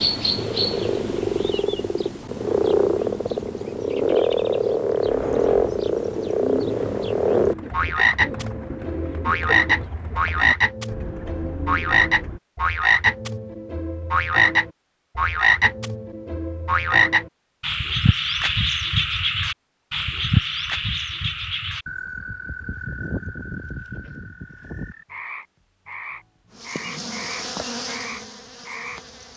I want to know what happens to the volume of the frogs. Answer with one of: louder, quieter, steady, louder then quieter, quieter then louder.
quieter.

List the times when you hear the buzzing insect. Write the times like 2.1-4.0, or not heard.
26.5-29.3.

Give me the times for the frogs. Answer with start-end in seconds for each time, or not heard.
0.0-29.0.